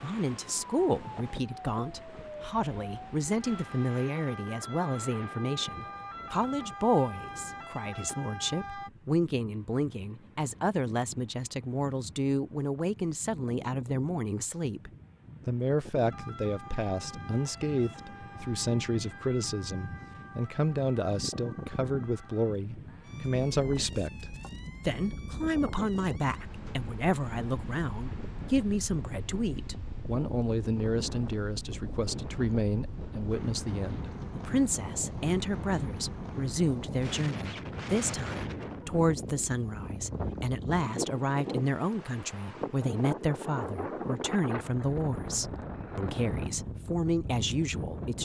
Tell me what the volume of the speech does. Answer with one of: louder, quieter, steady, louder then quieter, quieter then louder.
steady.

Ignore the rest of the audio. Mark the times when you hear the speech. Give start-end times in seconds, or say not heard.
0.0-48.2.